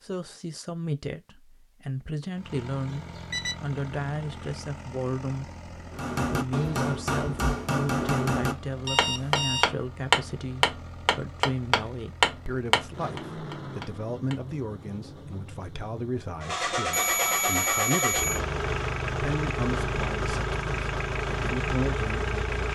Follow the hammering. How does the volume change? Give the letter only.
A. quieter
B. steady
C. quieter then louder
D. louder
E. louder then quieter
E.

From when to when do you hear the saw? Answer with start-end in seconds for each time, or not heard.
not heard.